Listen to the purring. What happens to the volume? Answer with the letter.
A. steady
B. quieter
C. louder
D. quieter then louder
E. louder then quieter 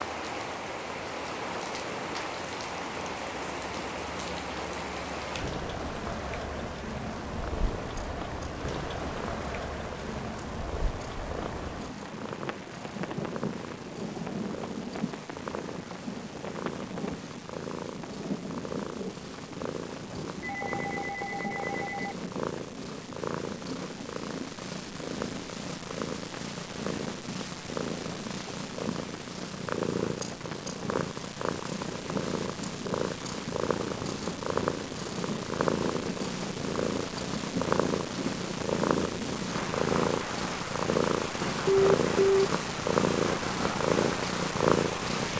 C.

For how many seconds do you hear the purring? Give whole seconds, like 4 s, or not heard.
45 s.